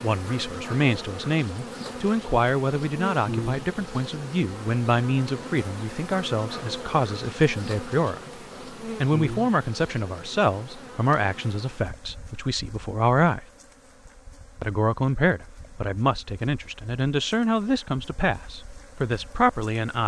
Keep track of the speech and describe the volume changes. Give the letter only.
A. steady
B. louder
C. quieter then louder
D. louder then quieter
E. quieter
A.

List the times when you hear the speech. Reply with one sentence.
The speech can be heard from 0.0 to 13.4 s and from 14.6 to 20.0 s.